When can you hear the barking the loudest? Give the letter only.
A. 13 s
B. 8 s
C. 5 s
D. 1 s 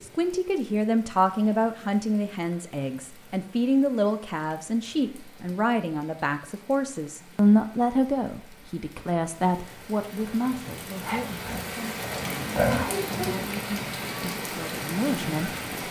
A.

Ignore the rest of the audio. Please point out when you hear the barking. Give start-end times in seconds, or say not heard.
11.1-13.6.